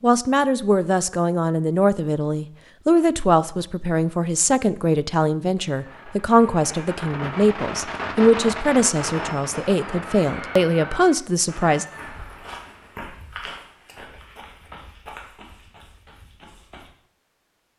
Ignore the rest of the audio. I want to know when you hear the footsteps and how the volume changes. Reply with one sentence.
The footsteps can be heard from 11.8 to 16.9 s, getting quieter.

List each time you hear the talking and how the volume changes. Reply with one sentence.
The talking can be heard from 0.0 to 11.8 s, at a steady volume.